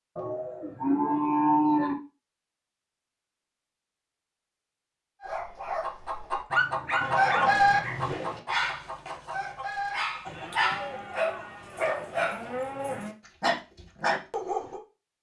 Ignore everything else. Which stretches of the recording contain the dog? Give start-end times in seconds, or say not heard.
5.2-14.8.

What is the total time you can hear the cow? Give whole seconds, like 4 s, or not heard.
6 s.